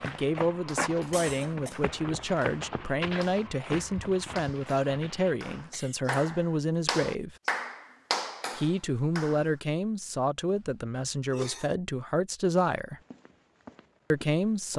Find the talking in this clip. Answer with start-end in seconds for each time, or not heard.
0.1-7.3, 8.6-13.0, 14.1-14.7.